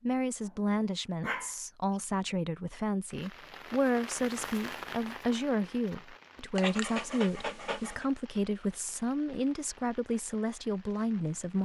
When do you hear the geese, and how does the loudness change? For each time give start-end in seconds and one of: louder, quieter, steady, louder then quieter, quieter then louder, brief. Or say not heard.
not heard.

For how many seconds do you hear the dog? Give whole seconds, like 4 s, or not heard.
3 s.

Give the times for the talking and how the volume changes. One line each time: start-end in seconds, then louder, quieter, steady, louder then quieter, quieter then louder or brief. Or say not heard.
0.0-11.6 steady.